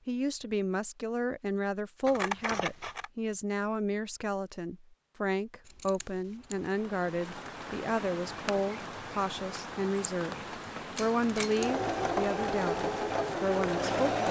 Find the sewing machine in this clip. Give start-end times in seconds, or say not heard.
10.9-14.2.